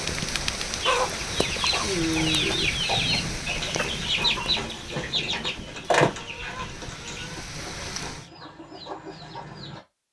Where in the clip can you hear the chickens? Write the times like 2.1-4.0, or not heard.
0.8-9.8.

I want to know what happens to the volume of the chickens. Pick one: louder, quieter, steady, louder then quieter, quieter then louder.
quieter.